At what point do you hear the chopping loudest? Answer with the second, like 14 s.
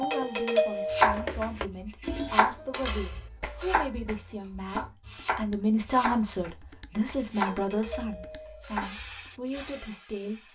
1 s.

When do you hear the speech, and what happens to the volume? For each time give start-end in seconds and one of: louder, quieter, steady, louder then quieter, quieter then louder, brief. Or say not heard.
0.0-10.4 louder then quieter.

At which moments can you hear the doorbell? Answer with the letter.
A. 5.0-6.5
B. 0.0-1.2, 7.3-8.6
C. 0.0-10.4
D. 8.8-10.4
B.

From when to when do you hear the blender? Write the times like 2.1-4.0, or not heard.
not heard.